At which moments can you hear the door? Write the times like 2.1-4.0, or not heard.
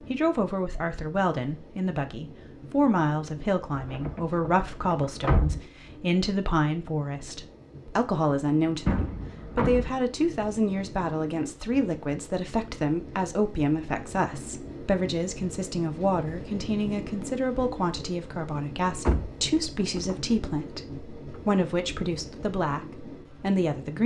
3.8-5.6, 8.8-9.9, 19.1-20.7.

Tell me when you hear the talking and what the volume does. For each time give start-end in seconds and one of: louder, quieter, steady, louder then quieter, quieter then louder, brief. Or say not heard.
0.1-24.0 steady.